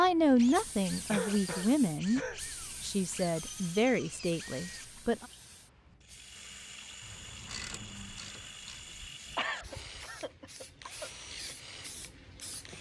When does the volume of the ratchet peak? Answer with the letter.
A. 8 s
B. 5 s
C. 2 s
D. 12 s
A.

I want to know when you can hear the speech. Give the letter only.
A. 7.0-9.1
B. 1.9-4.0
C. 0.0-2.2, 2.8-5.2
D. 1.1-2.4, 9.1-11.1
C.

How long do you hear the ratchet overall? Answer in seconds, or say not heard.
2 s.